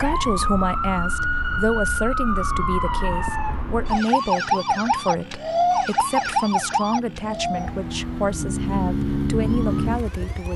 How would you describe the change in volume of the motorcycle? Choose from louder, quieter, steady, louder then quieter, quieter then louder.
louder.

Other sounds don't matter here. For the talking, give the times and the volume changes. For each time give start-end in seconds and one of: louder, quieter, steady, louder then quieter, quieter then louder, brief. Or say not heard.
0.0-10.5 steady.